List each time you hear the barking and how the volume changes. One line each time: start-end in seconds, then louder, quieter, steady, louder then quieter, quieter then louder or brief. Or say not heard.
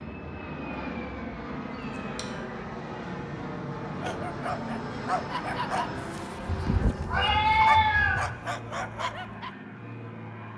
3.9-9.5 steady.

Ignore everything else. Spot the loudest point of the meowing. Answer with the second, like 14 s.
8 s.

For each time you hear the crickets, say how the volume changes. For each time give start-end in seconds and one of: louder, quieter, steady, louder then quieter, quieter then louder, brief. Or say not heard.
not heard.